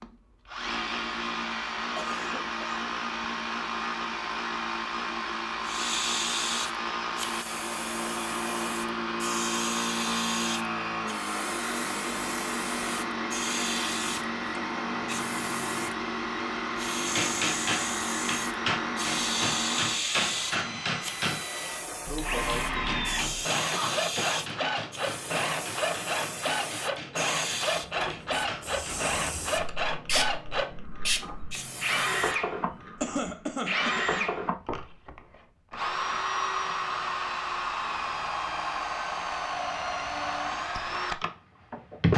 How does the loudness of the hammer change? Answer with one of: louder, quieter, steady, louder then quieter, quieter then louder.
quieter.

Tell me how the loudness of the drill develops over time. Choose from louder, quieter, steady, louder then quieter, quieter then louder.
steady.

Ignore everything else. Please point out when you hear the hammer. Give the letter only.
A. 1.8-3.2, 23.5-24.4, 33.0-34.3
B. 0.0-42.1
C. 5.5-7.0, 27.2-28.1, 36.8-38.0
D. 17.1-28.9
D.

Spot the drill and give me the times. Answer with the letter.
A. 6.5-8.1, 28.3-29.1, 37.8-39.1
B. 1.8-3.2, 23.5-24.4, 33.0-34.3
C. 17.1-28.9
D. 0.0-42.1
D.